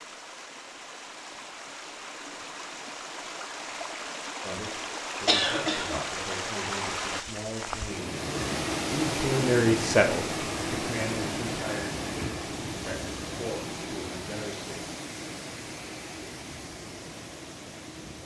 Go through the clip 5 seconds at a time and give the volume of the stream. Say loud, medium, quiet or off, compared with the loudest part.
medium, loud, loud, medium.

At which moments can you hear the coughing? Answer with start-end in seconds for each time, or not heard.
5.2-6.0.